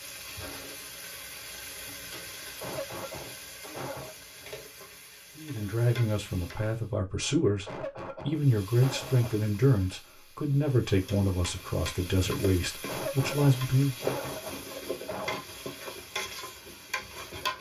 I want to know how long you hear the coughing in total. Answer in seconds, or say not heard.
6 s.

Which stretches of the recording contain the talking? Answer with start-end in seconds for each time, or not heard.
5.3-14.2.